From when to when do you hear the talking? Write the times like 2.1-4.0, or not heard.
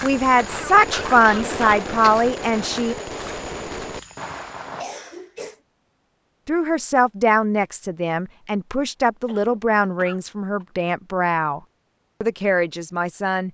0.0-3.0, 6.5-11.6, 12.2-13.4.